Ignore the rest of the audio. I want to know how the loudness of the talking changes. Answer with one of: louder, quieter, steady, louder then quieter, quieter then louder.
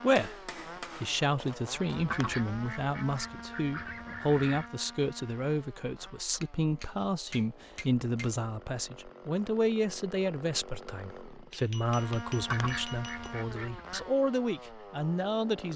steady.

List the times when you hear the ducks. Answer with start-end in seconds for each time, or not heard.
1.9-4.7, 12.3-14.1.